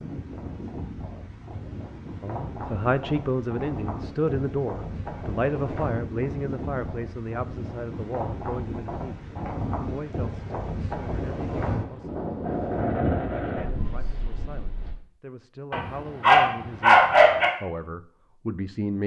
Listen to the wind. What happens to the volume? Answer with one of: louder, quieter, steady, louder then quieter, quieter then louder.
louder.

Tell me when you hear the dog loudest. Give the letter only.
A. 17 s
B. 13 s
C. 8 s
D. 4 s
A.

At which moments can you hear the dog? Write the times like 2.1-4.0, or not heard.
15.7-17.4.